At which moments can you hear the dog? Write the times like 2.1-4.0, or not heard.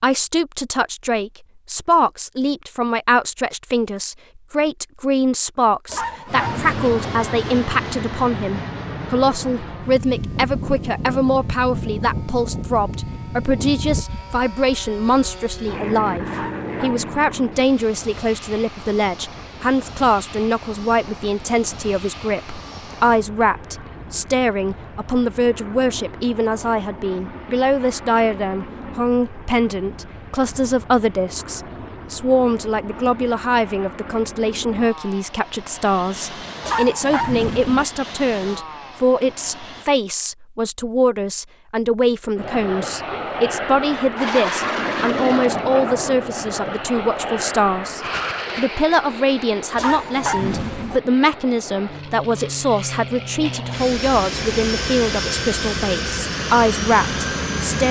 5.8-7.0, 16.3-17.3, 36.6-37.9, 49.8-51.0.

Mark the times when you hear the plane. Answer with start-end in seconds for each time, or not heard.
6.2-39.9, 42.4-57.8.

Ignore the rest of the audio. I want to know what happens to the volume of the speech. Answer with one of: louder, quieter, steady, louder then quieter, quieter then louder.
steady.